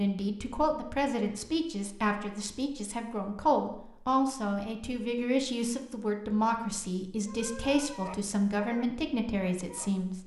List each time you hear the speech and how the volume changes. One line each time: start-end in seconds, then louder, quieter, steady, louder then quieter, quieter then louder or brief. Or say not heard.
0.0-10.2 steady.